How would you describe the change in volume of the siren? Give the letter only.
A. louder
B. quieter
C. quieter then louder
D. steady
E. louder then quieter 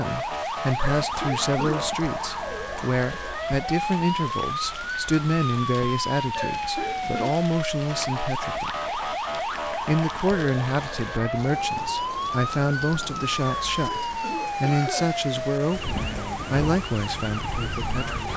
D.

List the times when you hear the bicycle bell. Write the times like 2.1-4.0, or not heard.
not heard.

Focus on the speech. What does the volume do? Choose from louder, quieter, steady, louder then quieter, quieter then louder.
steady.